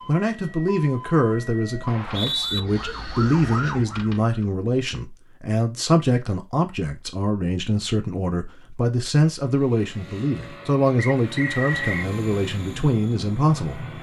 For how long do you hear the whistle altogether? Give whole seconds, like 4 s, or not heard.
2 s.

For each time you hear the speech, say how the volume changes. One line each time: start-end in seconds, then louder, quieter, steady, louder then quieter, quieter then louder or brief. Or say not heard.
0.1-13.8 steady.